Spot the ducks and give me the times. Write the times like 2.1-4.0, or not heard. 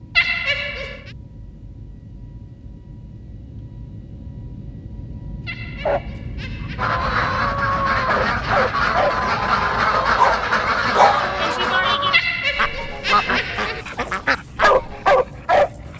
6.8-15.2.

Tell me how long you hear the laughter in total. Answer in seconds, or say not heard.
4 s.